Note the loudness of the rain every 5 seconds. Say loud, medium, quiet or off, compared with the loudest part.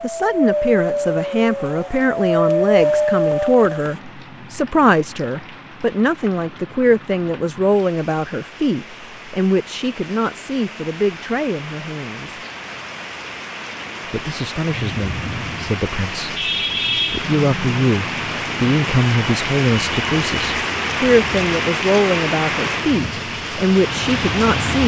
quiet, quiet, medium, loud, loud.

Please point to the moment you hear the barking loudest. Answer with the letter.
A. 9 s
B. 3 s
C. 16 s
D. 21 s
B.